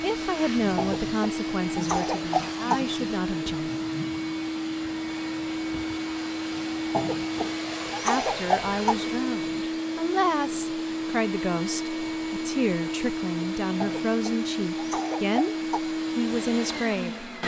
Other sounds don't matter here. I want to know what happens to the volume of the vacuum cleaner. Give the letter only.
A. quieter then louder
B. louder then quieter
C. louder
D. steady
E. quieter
D.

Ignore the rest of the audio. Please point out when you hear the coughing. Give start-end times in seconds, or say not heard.
0.8-2.8, 6.9-8.9, 13.8-15.8.